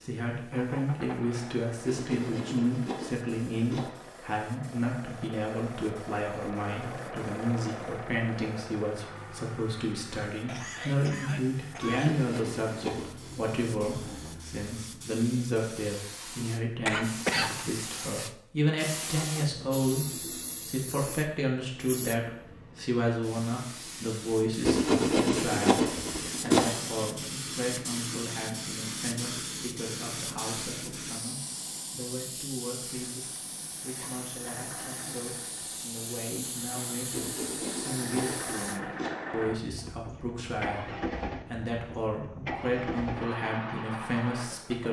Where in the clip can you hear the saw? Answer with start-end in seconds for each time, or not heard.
1.9-3.9, 11.8-13.6, 24.6-26.6, 37.1-39.1.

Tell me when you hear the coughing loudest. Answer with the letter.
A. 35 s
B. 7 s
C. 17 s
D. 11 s
C.